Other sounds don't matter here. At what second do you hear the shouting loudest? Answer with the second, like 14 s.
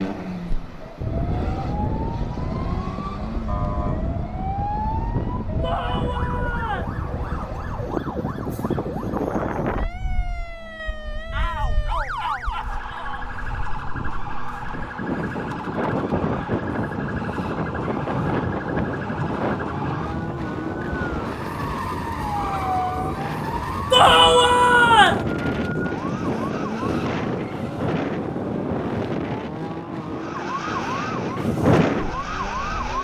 24 s.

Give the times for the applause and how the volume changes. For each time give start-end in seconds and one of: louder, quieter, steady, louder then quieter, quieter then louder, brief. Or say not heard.
not heard.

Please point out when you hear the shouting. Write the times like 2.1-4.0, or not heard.
5.6-7.0, 11.3-13.3, 23.9-25.2.